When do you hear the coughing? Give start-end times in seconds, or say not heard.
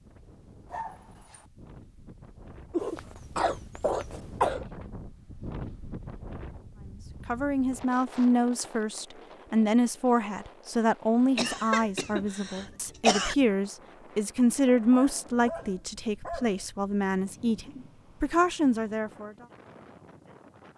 2.7-4.7, 11.3-13.3.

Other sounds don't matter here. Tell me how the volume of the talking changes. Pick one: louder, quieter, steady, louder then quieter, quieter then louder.
steady.